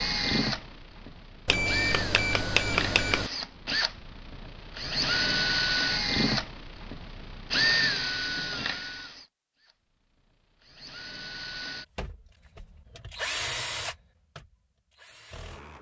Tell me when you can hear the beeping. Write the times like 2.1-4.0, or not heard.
1.4-3.3.